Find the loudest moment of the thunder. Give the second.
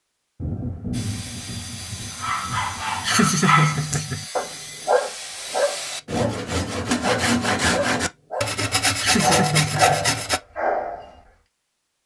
1 s.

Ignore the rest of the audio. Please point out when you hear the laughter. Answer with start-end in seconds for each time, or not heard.
3.0-4.2, 9.0-10.2.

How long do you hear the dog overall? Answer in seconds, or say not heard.
9 s.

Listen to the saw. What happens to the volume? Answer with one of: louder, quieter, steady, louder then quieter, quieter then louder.
louder.